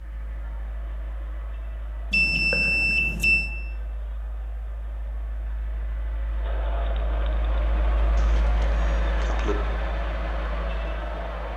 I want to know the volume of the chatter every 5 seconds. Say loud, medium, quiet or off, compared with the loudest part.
quiet, loud, loud.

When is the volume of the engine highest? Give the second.
9 s.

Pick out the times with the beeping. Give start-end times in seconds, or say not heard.
2.1-3.5, 8.2-9.6.